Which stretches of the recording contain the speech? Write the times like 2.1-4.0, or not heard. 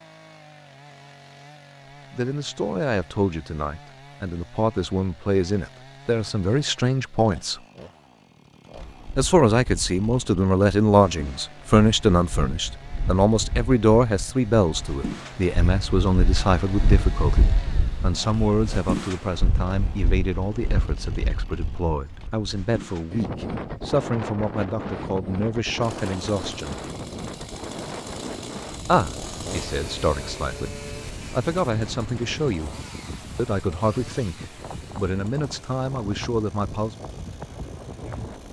2.1-7.6, 9.2-26.8, 28.9-32.8, 33.4-37.0.